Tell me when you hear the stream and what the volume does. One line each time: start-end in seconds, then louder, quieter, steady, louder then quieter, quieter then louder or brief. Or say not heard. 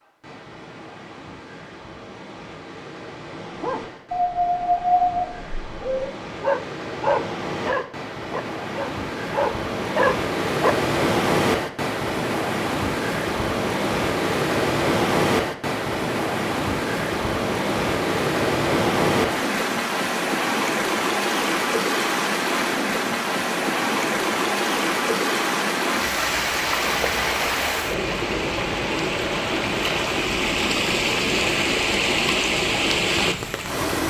0.0-34.0 louder.